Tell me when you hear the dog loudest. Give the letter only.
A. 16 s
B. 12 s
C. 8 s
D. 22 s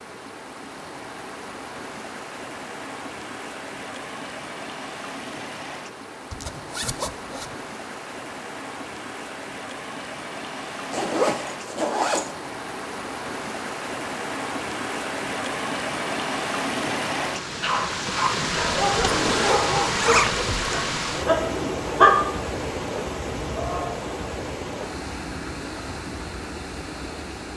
D.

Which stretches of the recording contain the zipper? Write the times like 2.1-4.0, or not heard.
6.3-7.6, 10.9-12.3, 19.1-20.7.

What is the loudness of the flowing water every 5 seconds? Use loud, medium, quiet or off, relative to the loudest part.
medium, medium, medium, loud, loud, medium.